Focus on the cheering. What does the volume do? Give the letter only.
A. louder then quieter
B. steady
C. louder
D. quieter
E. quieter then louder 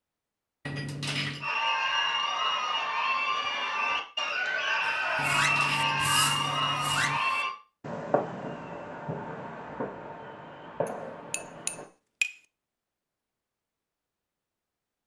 B.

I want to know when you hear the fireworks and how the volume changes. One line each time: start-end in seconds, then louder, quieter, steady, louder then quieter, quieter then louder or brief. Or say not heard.
4.8-11.8 quieter.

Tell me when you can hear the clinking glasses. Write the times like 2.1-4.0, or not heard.
0.7-1.5, 5.2-7.2, 10.8-12.3.